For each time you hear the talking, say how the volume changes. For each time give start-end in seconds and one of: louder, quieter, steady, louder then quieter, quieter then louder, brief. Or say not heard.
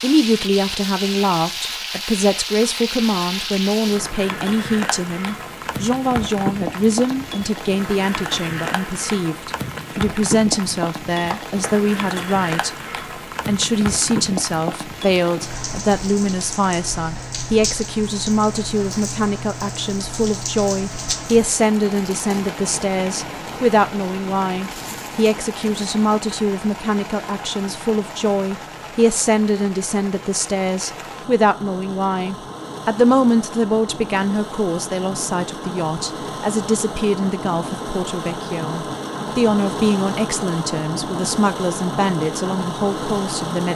0.0-12.7 steady
13.4-43.7 steady.